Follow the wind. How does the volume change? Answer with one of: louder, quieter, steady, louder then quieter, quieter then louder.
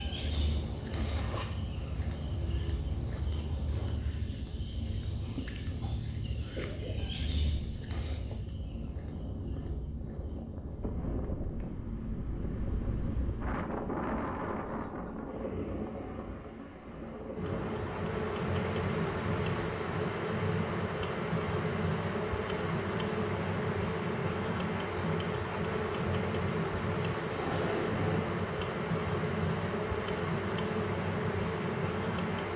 louder.